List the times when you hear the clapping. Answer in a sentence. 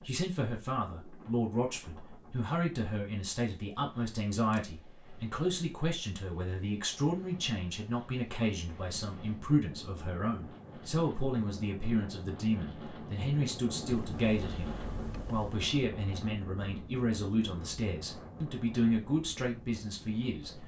The clapping can't be heard in this clip.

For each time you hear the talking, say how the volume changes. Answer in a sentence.
The talking can be heard from 0.0 to 20.6 s, at a steady volume.